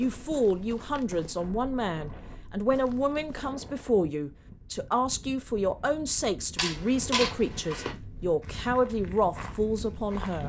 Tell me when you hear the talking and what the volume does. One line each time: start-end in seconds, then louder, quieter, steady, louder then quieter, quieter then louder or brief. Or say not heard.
0.0-10.4 steady.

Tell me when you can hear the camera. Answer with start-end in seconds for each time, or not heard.
6.5-8.0.